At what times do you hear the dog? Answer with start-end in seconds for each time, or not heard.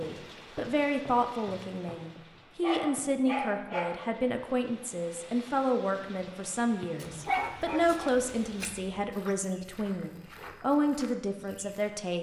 2.6-4.0, 7.0-8.9.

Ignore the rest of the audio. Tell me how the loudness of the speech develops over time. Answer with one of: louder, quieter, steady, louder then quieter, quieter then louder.
steady.